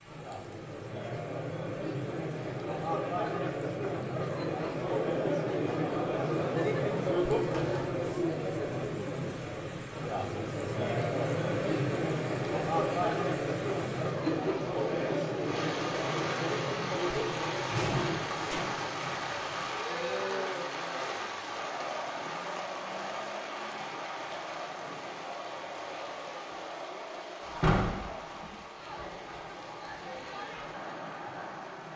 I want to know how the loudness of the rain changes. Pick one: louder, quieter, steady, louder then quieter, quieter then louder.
louder then quieter.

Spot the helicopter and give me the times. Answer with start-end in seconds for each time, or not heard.
not heard.